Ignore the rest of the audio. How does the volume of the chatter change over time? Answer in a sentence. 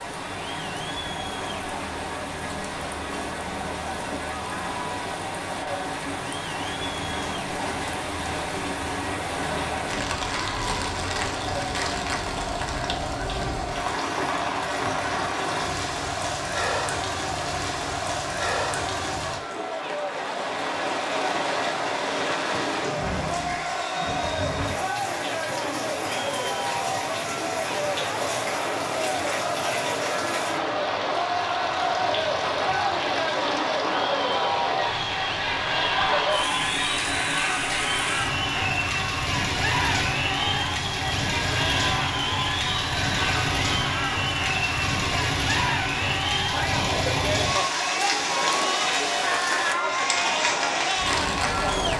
The loudness of the chatter goes up.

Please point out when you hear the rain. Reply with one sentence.
The rain can be heard from 0.0 to 51.9 s.